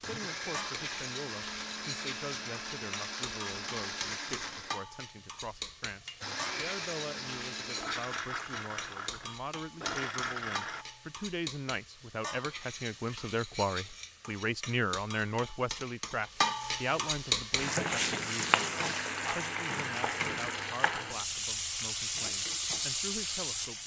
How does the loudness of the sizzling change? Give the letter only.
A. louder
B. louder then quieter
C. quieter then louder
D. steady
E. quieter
A.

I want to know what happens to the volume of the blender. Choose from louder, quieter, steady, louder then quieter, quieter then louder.
steady.